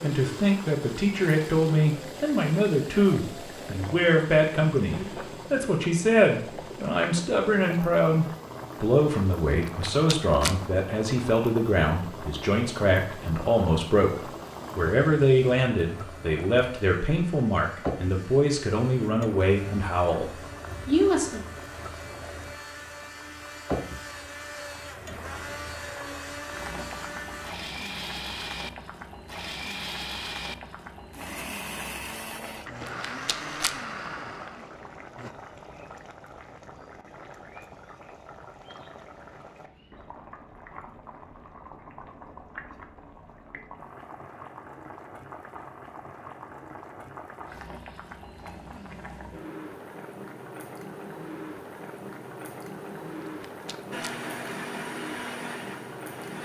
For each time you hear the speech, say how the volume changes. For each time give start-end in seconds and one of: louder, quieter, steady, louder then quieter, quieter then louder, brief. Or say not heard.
0.0-21.4 steady.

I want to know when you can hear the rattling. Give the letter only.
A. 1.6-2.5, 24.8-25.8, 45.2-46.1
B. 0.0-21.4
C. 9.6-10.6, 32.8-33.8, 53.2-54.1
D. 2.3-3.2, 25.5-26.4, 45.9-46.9
C.